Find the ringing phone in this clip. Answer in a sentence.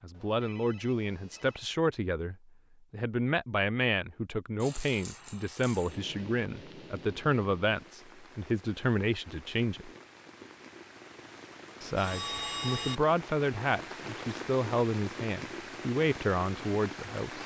You can hear the ringing phone from 0.1 to 1.6 s and from 11.9 to 13.0 s.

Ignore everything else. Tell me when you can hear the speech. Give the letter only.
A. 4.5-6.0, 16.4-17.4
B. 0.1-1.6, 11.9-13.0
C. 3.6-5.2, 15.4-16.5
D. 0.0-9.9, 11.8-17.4
D.